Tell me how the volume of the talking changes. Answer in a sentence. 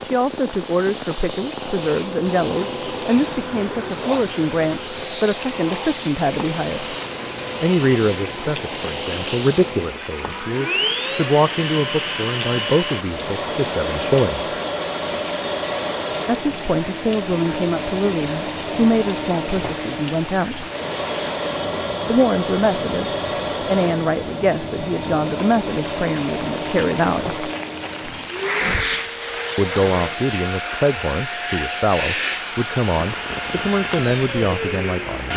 The loudness of the talking stays about the same.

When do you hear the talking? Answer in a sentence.
You can hear the talking from 0.0 to 7.0 s, from 7.6 to 14.5 s, from 16.2 to 20.6 s, from 22.1 to 27.4 s and from 29.6 to 35.3 s.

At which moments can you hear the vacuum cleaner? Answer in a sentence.
The vacuum cleaner can be heard from 0.0 to 35.3 s.